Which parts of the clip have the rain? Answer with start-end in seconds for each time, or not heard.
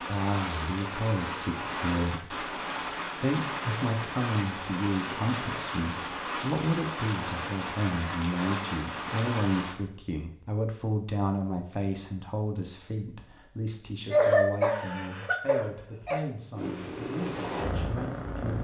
0.0-9.8.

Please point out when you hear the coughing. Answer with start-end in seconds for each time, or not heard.
14.1-16.2.